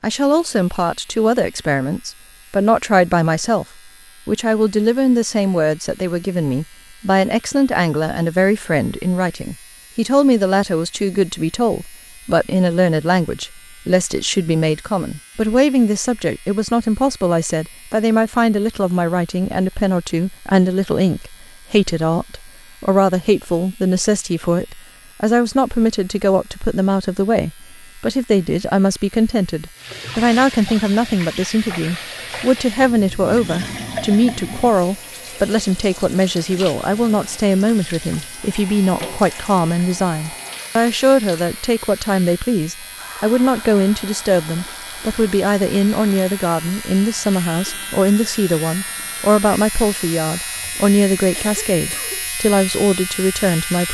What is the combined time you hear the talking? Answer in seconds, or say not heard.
53 s.